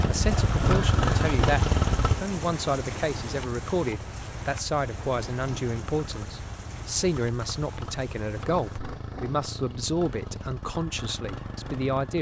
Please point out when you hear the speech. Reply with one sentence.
You can hear the speech from 0.1 to 12.1 s.